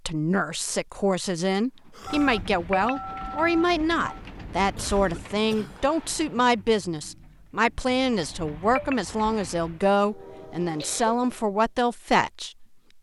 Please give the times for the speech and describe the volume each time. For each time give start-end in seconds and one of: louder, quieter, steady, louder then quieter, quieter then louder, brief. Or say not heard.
0.1-12.9 steady.